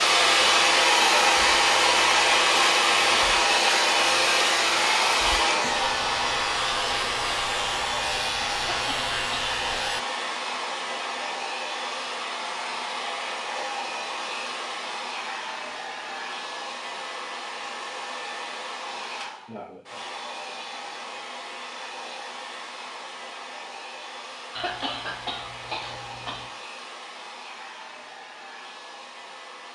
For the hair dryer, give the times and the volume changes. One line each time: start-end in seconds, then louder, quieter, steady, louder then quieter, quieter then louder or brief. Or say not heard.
0.0-29.7 quieter.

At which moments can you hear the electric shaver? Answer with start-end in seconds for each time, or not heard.
0.1-10.1.